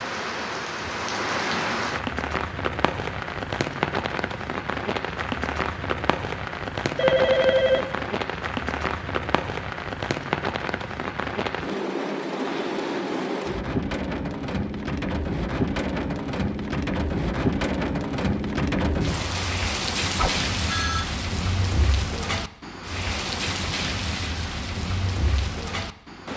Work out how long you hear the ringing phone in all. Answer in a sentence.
The ringing phone can be heard for 2 seconds in total.